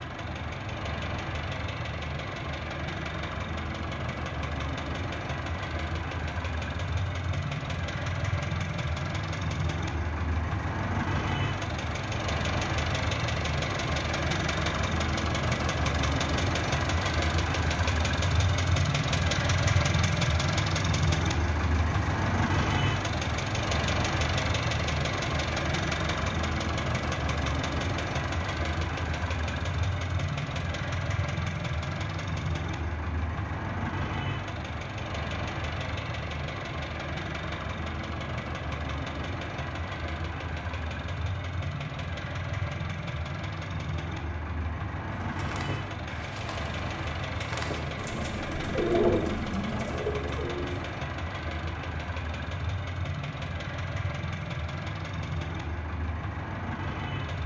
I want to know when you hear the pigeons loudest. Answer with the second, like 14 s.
49 s.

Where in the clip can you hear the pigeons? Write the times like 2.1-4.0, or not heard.
45.1-50.8.